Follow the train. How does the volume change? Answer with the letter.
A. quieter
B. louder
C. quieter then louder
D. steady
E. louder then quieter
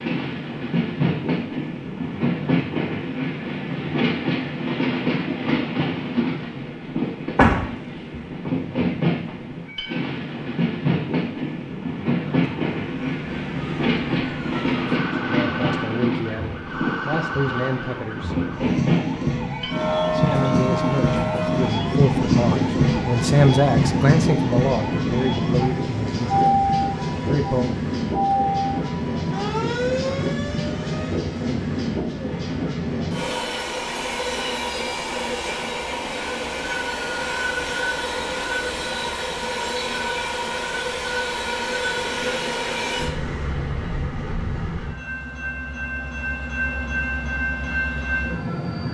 D.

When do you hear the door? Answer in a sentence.
The door can be heard from 7.3 to 8.2 s.